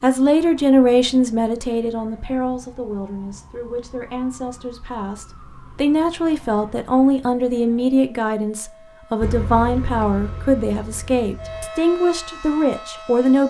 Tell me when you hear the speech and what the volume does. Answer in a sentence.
The speech can be heard from 0.0 to 13.4 s, getting quieter then louder.